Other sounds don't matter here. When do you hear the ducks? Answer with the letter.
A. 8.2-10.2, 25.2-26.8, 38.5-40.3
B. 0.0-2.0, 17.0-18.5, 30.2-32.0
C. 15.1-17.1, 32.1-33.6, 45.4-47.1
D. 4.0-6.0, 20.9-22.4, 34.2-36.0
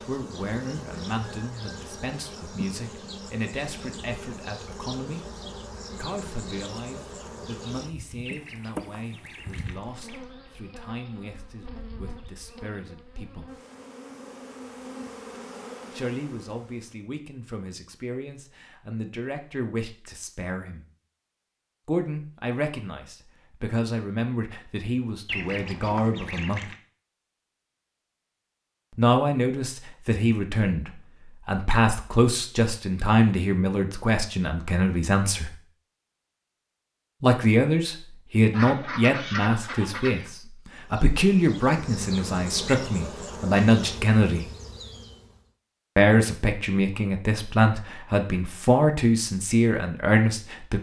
A.